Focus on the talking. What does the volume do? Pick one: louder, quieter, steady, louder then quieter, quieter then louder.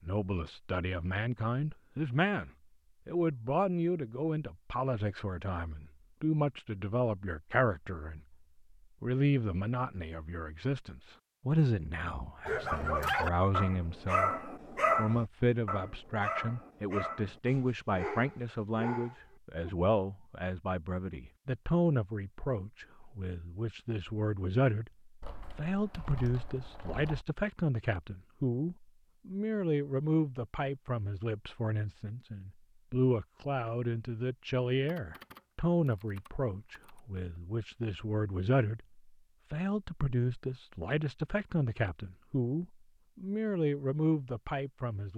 steady.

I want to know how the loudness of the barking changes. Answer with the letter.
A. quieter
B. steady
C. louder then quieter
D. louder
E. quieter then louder
A.